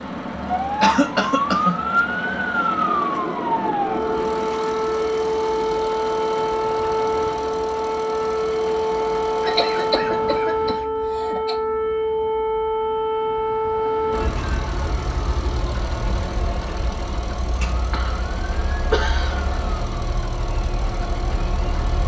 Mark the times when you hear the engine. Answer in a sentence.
You can hear the engine from 0.0 to 10.4 s and from 14.1 to 22.0 s.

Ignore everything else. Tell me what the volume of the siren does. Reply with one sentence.
The loudness of the siren goes down.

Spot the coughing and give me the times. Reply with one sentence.
You can hear the coughing from 0.8 to 1.8 s, from 9.4 to 11.6 s, from 17.7 to 18.2 s and from 18.9 to 19.4 s.